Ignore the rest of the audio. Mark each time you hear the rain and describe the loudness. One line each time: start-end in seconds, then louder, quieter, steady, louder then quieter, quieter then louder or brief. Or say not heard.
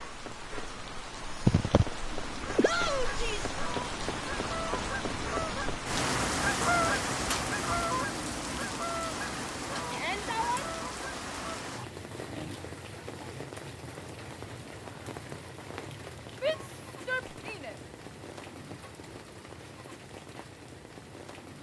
0.0-21.5 quieter.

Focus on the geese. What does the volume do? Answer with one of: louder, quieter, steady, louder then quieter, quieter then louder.
louder then quieter.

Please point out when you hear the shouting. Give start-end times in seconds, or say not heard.
2.6-3.5, 9.9-10.7, 16.4-17.8.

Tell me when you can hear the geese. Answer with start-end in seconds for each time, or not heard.
2.0-11.6.